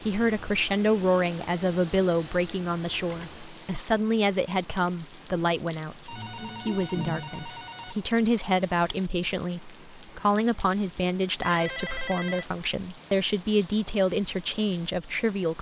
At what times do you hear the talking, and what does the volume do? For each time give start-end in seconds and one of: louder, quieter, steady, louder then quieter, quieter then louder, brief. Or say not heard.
0.0-15.5 steady.